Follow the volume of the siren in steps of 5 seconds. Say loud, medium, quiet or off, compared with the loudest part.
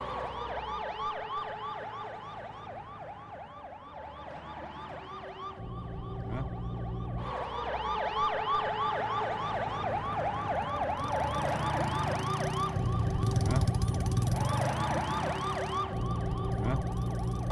medium, loud, loud, loud.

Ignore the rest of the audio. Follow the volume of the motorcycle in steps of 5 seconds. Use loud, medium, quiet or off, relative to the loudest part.
off, off, loud, medium.